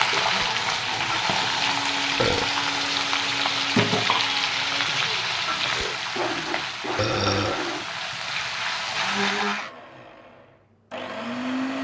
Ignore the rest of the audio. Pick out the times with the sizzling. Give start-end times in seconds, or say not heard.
0.0-9.7.